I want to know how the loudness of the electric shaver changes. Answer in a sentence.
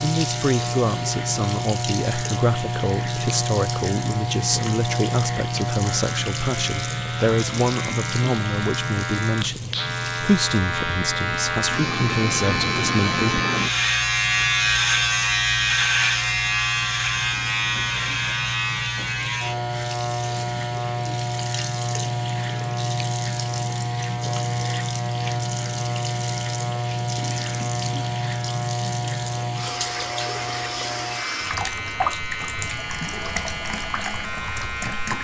The volume of the electric shaver goes up, then down.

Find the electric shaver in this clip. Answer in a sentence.
The electric shaver can be heard from 0.0 to 35.1 s.